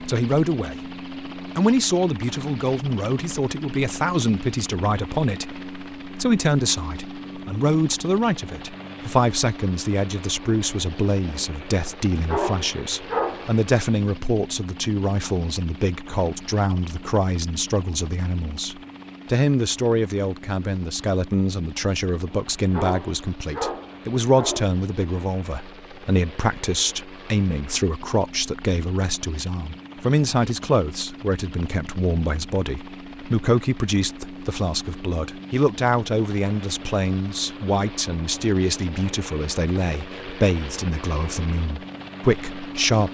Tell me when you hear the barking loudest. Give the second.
13 s.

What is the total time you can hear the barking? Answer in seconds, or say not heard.
4 s.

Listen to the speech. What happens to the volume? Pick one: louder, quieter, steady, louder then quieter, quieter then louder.
steady.